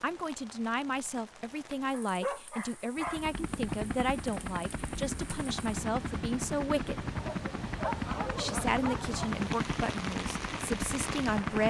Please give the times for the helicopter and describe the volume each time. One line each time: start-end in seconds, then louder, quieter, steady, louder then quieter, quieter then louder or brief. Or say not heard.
3.0-11.6 steady.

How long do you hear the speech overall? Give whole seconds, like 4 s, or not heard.
10 s.